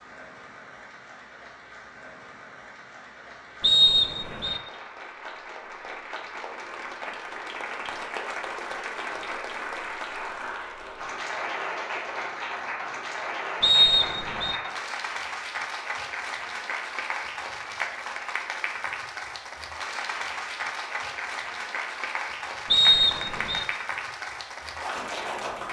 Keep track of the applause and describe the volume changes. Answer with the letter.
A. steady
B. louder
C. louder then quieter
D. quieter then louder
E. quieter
B.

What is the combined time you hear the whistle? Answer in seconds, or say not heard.
3 s.